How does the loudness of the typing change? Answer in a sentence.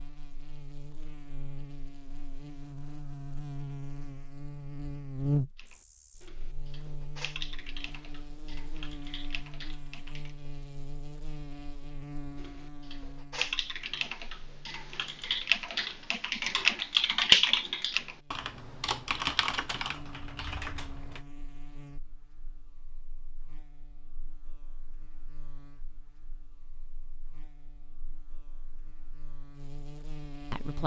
The volume of the typing goes up, then down.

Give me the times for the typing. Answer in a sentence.
The typing can be heard from 5.5 to 10.3 s and from 12.3 to 21.2 s.